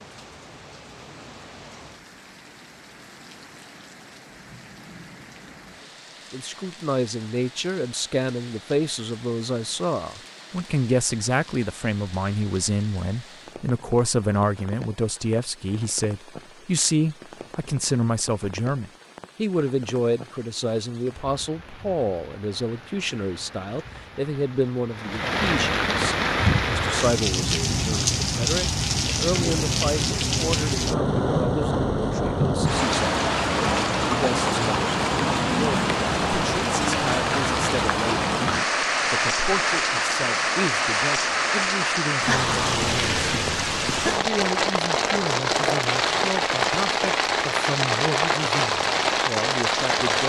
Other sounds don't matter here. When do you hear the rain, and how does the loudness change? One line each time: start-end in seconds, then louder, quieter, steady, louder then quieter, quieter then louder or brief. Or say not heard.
0.0-50.2 louder.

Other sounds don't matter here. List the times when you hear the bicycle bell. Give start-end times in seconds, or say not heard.
not heard.